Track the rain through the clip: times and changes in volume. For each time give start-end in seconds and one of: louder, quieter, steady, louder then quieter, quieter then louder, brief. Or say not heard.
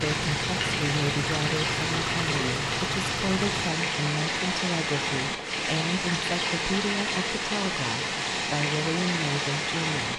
0.0-10.1 steady.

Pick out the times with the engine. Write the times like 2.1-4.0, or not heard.
0.0-3.7.